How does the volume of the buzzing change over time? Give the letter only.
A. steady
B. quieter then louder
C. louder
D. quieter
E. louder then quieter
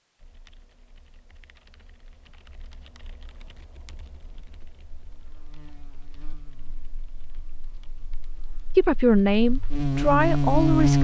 B.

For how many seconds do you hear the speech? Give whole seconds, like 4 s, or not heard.
2 s.